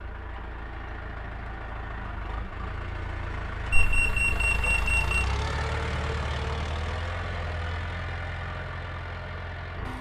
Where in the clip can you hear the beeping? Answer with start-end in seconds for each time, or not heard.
3.7-5.2.